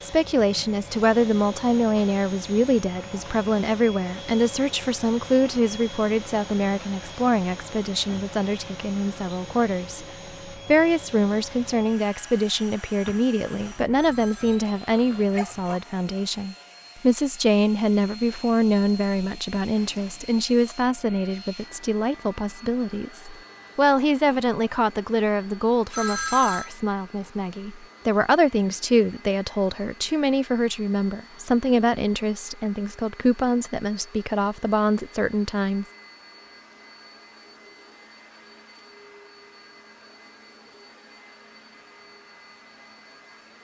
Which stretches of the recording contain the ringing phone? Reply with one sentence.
The ringing phone can be heard from 13.9 to 14.7 s and from 25.9 to 26.7 s.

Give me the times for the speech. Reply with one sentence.
The speech can be heard from 0.0 to 10.1 s and from 10.7 to 35.9 s.